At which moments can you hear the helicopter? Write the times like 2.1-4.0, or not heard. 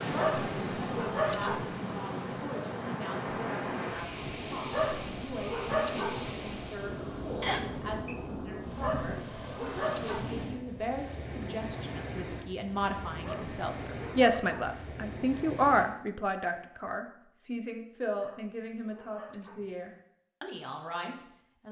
not heard.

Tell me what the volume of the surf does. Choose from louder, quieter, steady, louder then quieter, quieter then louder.
quieter.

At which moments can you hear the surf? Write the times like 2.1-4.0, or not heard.
0.0-15.9.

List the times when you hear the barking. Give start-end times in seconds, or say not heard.
0.1-1.8, 4.7-6.3, 8.8-10.4, 13.2-14.8, 18.1-19.8.